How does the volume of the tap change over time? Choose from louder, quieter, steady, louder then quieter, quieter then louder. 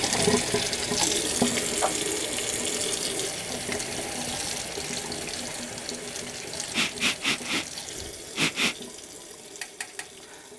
quieter.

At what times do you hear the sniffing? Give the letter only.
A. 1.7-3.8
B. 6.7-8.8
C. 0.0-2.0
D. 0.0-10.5
B.